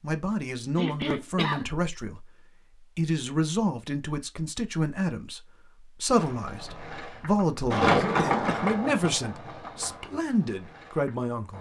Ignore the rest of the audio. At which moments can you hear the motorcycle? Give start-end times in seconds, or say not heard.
not heard.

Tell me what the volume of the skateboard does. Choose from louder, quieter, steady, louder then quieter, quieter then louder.
louder then quieter.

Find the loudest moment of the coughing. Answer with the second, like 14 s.
1 s.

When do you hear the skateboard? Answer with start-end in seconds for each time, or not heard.
6.1-11.5.